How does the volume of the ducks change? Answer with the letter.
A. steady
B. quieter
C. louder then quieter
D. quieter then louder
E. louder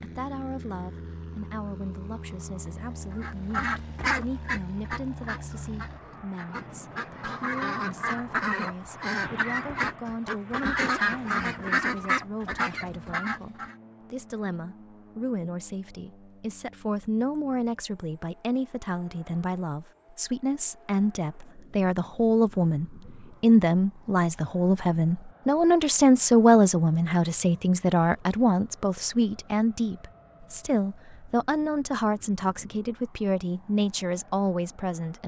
D.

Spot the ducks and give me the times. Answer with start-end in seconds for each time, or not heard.
3.2-13.8.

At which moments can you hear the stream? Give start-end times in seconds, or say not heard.
not heard.